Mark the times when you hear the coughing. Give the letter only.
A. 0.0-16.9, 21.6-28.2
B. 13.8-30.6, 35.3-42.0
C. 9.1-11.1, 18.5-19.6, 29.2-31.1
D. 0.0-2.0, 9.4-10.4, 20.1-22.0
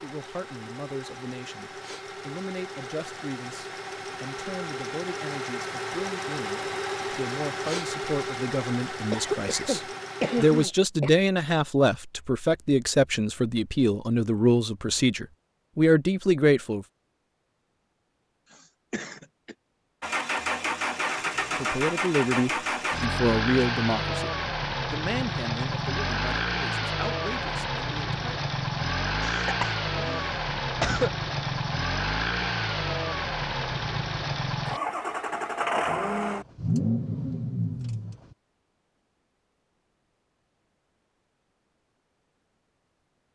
C.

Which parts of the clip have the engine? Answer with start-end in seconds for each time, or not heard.
0.0-10.7, 20.0-38.4.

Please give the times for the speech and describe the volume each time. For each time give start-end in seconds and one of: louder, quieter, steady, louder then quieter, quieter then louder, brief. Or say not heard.
0.0-16.9 louder
21.6-28.2 quieter.